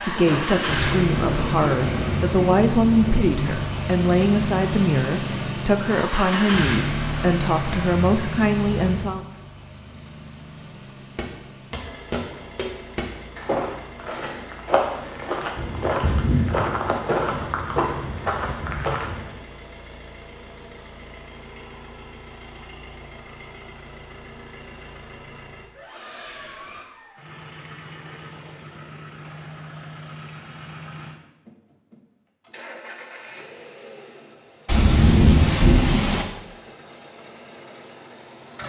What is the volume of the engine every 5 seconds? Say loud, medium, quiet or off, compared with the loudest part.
loud, loud, quiet, quiet, quiet, quiet, quiet, quiet.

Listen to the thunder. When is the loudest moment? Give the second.
35 s.